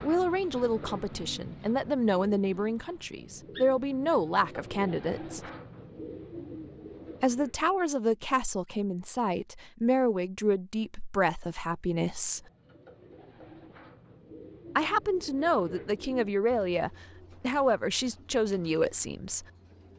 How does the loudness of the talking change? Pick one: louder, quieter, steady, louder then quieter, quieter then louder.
steady.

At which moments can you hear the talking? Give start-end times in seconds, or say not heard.
0.0-5.5, 7.2-12.4, 14.8-19.4.